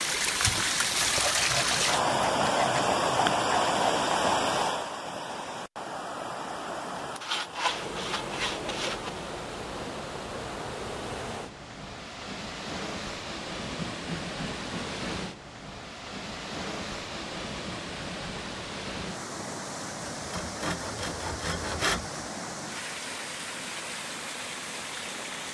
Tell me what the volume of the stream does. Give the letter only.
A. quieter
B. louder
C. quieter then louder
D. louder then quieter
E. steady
A.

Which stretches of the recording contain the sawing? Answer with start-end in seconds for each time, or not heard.
1.0-3.8, 7.2-9.1, 13.6-15.2, 20.0-22.1.